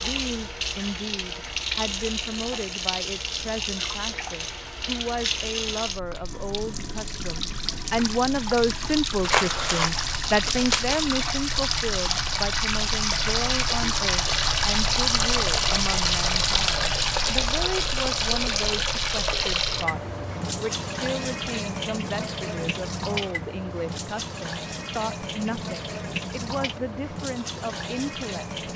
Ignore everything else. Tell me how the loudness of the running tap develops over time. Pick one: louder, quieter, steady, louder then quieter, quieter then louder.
louder then quieter.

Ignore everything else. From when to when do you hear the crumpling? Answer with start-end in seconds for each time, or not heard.
9.2-11.1.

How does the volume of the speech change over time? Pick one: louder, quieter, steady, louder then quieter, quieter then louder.
louder then quieter.